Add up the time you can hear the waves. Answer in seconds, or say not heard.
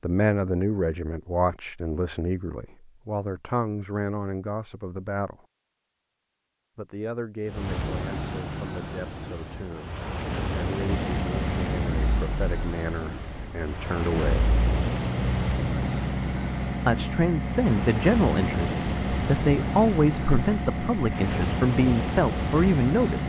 16 s.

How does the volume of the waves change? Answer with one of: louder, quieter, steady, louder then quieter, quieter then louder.
steady.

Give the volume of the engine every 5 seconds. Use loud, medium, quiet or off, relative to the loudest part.
off, off, loud, loud, loud.